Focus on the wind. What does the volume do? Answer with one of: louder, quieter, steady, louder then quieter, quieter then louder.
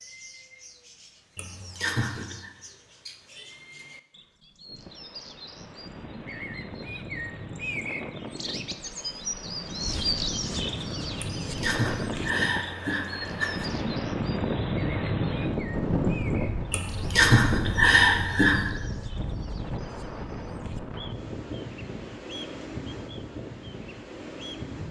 louder then quieter.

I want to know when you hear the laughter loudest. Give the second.
18 s.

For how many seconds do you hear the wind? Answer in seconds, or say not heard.
20 s.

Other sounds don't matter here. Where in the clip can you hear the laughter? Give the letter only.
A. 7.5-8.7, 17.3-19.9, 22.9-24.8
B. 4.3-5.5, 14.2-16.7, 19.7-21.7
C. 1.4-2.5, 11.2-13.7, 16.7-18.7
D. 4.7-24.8
C.